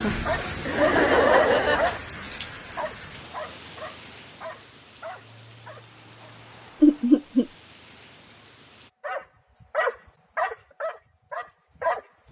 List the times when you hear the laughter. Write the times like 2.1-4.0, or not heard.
0.7-2.0, 6.8-7.5.